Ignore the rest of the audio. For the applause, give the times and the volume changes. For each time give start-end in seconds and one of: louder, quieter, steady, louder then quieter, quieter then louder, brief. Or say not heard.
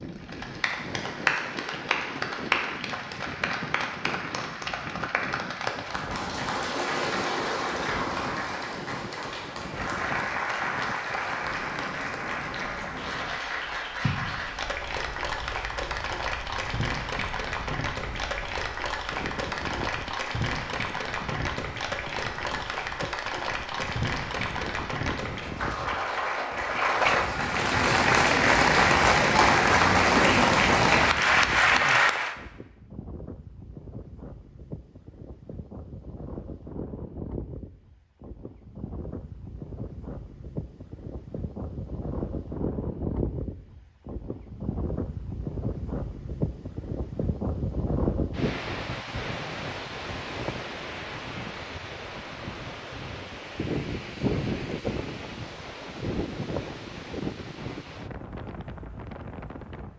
0.0-32.4 louder.